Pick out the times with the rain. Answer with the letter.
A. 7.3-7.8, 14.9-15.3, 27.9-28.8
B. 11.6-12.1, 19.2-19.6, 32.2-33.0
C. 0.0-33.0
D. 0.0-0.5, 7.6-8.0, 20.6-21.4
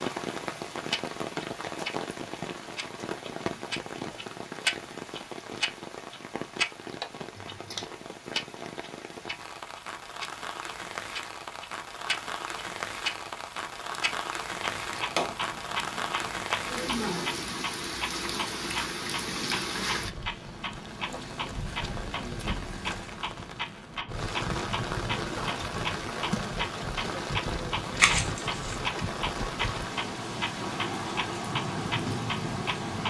C.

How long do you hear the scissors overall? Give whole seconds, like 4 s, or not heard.
2 s.